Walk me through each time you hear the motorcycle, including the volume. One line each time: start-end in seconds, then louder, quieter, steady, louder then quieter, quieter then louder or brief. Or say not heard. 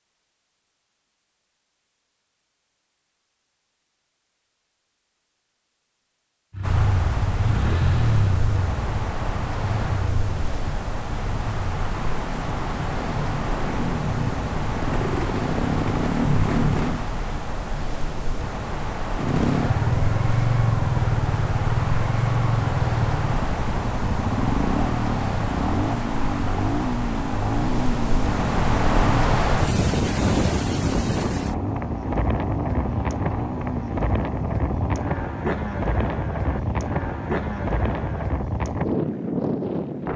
6.5-17.1 quieter then louder
19.1-38.5 quieter.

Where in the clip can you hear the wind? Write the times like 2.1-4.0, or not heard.
6.6-40.1.